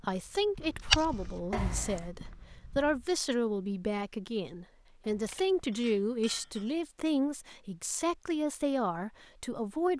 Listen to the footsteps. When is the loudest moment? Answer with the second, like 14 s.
1 s.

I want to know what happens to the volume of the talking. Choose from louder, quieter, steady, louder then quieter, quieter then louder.
steady.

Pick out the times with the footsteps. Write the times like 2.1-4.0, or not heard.
0.0-3.1.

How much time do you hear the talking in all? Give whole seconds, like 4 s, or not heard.
10 s.